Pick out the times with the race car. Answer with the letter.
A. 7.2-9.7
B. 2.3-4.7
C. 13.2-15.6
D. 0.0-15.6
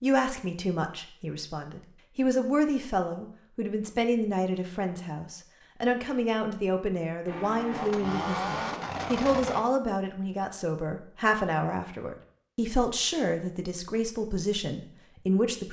A.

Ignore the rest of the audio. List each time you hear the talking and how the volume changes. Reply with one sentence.
You can hear the talking from 0.0 to 15.6 s, at a steady volume.